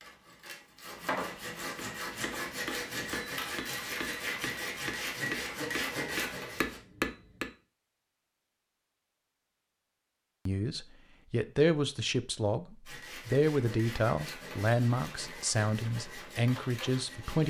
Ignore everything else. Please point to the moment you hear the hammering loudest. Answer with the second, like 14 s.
7 s.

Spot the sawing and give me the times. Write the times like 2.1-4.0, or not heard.
0.0-6.8, 12.8-17.4.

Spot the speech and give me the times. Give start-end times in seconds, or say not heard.
10.4-17.4.